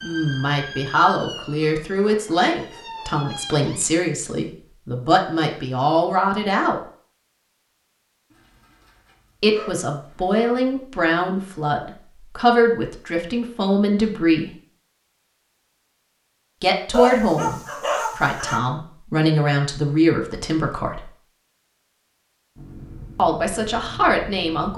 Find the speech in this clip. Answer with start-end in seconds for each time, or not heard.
0.0-6.8, 9.4-14.5, 16.6-21.1, 23.1-24.7.